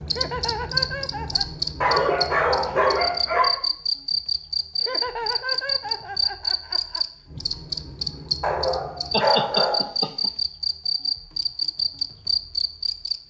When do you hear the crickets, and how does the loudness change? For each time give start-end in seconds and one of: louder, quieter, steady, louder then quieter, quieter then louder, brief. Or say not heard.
0.0-13.2 steady.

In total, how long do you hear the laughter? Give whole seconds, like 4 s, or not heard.
5 s.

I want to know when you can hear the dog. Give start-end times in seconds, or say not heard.
1.8-3.5, 8.4-9.9.